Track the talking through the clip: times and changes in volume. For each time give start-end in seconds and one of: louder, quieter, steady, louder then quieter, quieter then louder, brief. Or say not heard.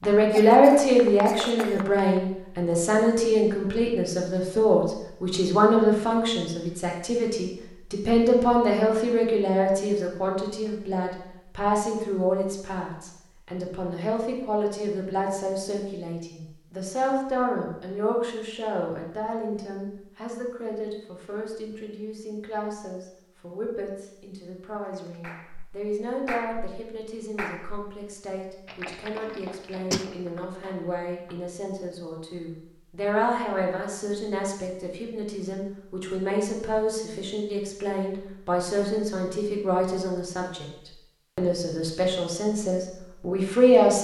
0.0-40.6 quieter then louder
41.4-43.9 brief.